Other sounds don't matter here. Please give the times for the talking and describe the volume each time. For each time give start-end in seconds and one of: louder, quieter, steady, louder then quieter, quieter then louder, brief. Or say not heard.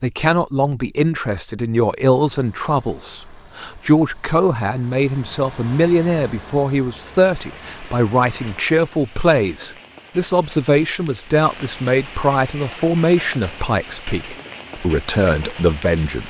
0.0-16.2 steady.